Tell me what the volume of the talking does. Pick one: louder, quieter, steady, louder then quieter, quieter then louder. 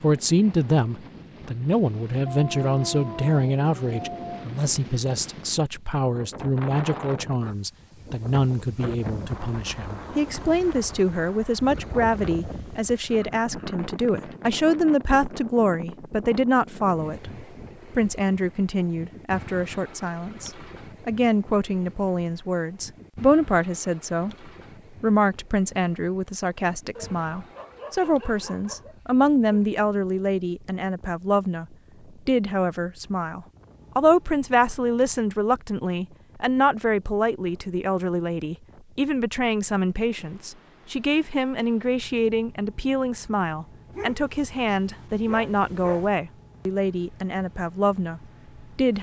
steady.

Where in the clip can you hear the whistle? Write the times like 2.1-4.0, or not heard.
not heard.